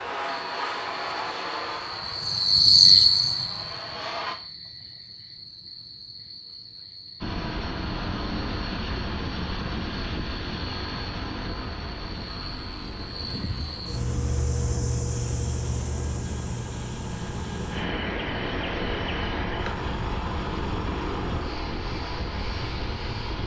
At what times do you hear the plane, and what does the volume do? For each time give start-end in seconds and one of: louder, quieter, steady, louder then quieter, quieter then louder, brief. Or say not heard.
0.0-4.3 quieter then louder
7.2-23.4 quieter then louder.